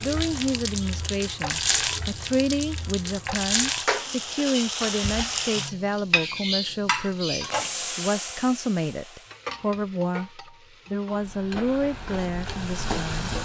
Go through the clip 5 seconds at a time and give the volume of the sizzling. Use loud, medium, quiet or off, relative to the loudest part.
loud, loud, medium.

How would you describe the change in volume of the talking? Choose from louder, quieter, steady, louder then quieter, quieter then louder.
steady.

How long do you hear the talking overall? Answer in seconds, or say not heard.
13 s.